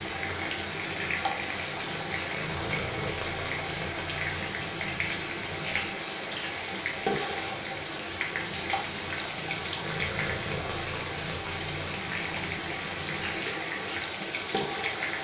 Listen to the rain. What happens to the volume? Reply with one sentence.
The loudness of the rain stays about the same.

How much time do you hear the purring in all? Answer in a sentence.
You can hear the purring for 15 seconds altogether.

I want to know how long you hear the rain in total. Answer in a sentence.
You can hear the rain for 15 seconds altogether.